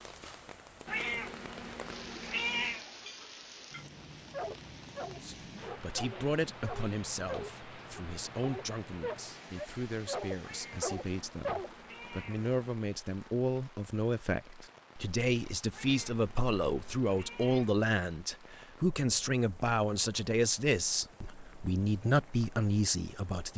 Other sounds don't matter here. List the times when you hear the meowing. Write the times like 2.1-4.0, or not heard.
0.8-2.9, 10.4-12.6, 15.7-17.7.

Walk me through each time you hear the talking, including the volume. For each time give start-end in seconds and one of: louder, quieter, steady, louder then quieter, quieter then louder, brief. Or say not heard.
5.2-23.5 louder.